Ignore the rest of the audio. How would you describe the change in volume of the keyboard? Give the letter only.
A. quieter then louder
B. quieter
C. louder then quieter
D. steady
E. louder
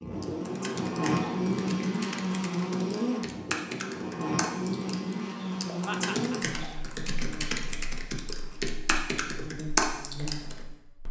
E.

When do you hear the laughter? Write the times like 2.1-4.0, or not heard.
5.8-6.8.